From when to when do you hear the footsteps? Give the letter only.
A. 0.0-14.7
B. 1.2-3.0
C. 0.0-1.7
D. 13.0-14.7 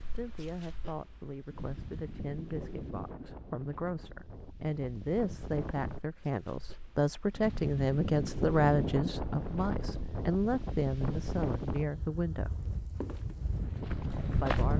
D.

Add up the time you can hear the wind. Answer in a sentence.
The wind can be heard for 15 seconds in total.